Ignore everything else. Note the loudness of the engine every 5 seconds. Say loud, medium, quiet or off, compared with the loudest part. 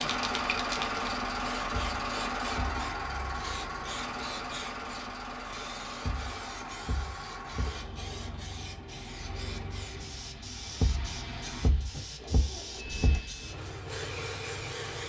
loud, medium, medium.